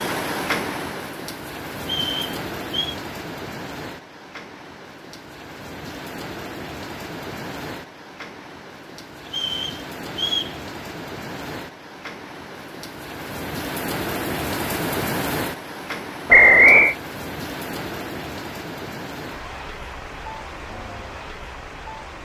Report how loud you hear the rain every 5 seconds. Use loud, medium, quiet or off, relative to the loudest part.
loud, medium, loud, loud, medium.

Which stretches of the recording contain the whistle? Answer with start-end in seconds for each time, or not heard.
1.8-3.0, 9.2-10.6, 16.3-16.9.